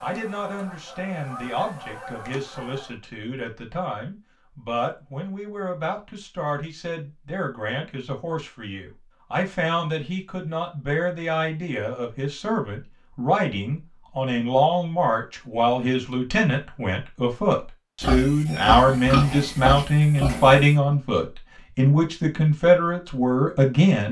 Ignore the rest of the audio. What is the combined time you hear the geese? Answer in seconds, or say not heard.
3 s.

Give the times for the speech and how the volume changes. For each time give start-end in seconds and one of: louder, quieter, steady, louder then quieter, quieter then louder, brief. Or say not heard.
0.0-24.0 louder.